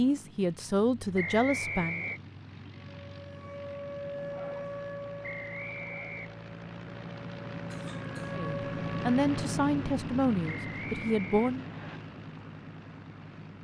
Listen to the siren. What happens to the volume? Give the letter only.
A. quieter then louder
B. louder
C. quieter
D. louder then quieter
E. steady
A.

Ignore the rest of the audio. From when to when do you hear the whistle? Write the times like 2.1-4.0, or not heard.
1.1-2.2, 5.2-6.4, 10.4-12.0.